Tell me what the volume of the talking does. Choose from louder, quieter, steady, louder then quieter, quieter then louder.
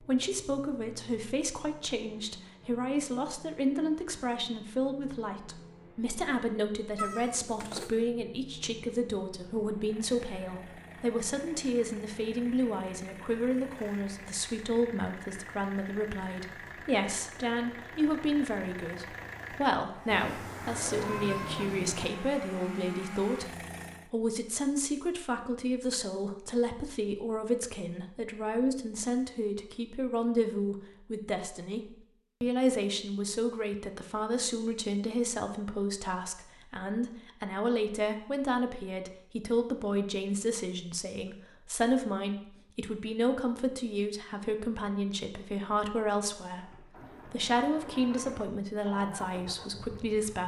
steady.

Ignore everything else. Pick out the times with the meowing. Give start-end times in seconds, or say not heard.
7.0-8.1, 20.1-22.1, 47.0-48.4.